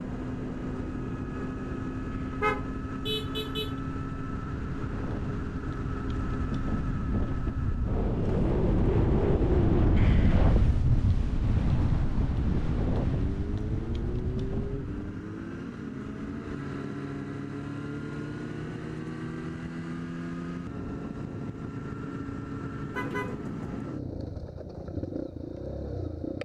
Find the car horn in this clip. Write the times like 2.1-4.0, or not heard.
2.3-3.8, 22.9-23.9.